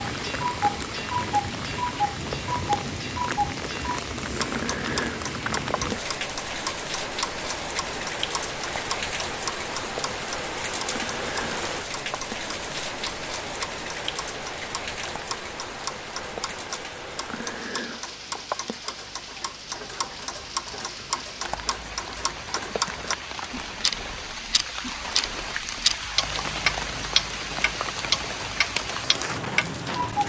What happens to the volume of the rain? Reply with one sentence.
The loudness of the rain goes down, then up.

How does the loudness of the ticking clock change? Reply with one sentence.
The volume of the ticking clock goes down, then up.